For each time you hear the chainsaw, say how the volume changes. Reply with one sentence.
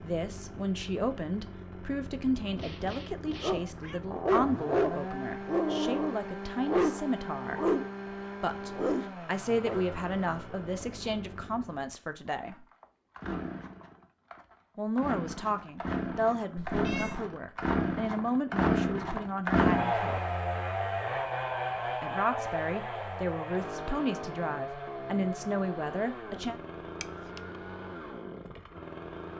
You can hear the chainsaw from 0.0 to 29.3 s, getting louder then quieter.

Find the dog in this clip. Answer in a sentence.
The dog can be heard from 3.4 to 7.9 s and from 8.5 to 9.8 s.